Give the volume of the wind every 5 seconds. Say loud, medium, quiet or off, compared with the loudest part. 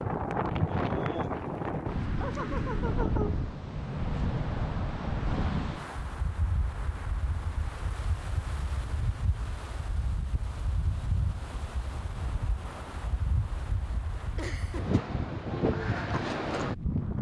loud, medium, medium, loud.